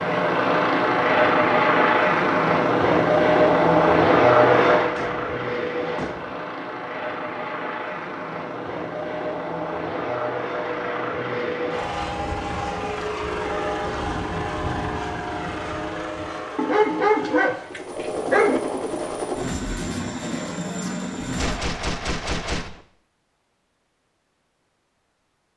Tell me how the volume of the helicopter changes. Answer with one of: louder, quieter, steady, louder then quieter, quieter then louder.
quieter.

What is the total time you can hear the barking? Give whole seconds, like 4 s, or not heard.
2 s.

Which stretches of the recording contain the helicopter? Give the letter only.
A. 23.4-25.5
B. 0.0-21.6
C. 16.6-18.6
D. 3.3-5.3
B.